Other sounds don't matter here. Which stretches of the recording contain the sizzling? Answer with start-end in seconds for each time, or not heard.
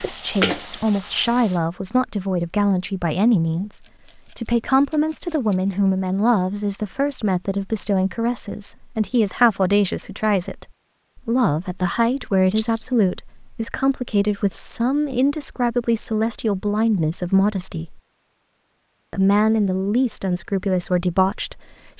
0.0-1.6.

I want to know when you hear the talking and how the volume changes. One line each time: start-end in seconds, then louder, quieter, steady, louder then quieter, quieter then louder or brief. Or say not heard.
0.0-18.0 steady
19.1-21.9 brief.